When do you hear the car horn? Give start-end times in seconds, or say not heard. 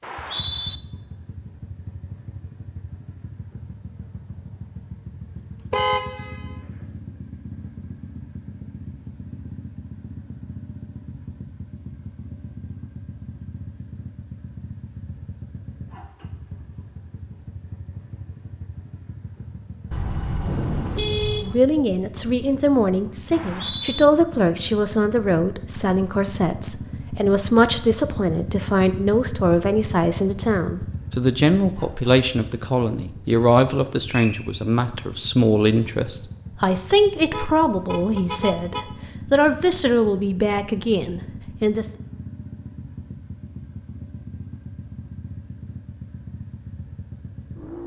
5.7-6.5, 19.9-21.6, 37.3-38.9.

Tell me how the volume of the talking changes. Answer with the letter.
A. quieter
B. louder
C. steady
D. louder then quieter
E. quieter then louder
C.